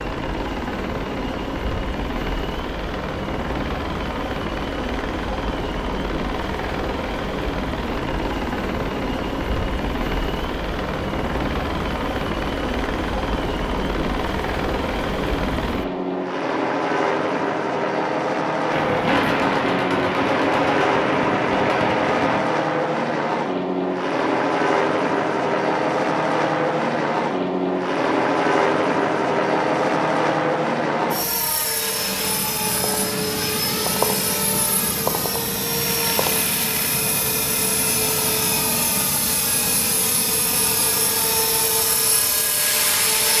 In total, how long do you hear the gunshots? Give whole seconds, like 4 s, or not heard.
4 s.